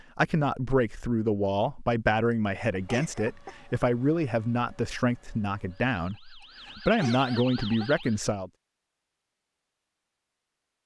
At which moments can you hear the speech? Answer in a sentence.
You can hear the speech from 0.1 to 8.5 s.